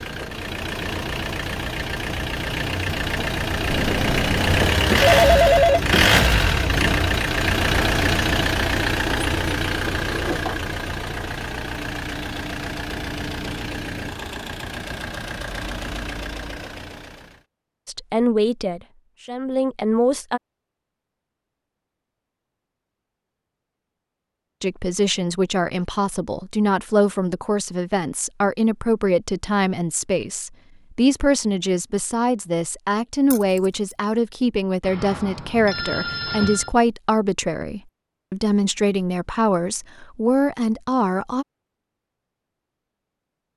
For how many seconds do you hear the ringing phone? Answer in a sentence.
The ringing phone can be heard for 4 seconds in total.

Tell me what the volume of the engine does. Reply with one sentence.
The loudness of the engine goes up, then down.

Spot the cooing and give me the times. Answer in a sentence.
You can't hear the cooing here.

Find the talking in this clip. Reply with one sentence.
You can hear the talking from 17.9 to 20.4 s and from 24.6 to 41.5 s.